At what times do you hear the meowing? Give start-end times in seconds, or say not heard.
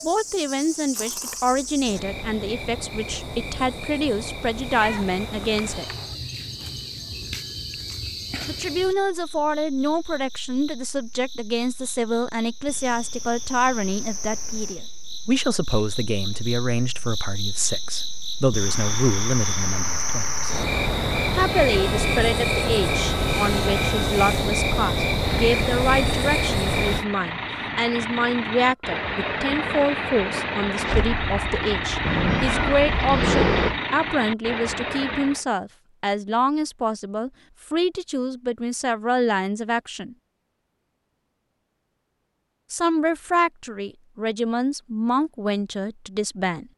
4.8-6.1, 32.0-33.8.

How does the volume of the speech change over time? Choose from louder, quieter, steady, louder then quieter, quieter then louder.
steady.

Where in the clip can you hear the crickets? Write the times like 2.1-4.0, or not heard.
0.0-27.1.